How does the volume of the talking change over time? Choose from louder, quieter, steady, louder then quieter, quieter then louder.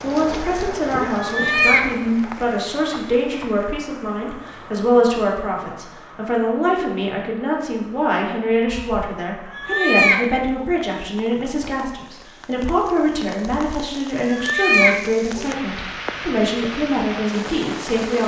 steady.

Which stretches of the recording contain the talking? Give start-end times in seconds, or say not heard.
0.0-18.2.